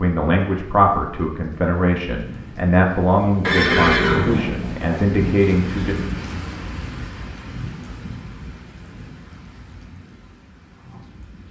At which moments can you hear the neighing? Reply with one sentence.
You can hear the neighing from 3.4 to 5.0 s.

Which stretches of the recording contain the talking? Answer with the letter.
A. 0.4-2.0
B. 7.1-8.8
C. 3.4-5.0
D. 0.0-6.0
D.